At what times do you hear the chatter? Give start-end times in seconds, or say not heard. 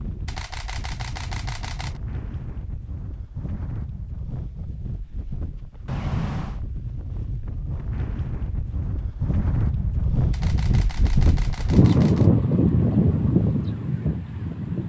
not heard.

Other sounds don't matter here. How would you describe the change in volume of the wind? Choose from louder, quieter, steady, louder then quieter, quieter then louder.
louder.